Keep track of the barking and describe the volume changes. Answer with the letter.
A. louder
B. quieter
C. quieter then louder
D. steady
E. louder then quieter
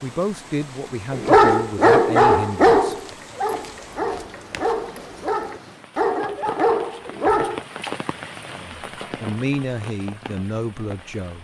B.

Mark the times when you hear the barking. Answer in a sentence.
You can hear the barking from 1.1 to 7.7 s.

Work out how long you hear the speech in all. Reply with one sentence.
You can hear the speech for 6 seconds altogether.